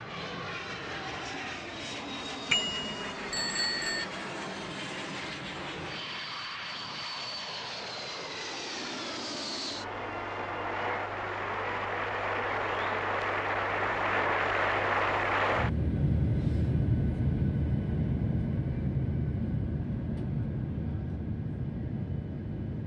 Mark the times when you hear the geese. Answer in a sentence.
You can't hear the geese here.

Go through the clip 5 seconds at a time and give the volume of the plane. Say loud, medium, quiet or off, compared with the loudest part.
medium, medium, loud, loud, medium.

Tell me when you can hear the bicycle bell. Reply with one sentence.
You can hear the bicycle bell from 2.5 to 4.0 s.